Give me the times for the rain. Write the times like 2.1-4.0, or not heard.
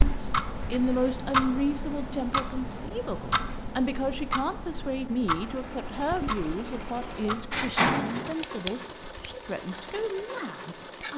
not heard.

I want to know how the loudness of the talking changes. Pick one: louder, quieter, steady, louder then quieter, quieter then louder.
quieter.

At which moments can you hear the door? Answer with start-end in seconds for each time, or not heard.
7.0-8.3.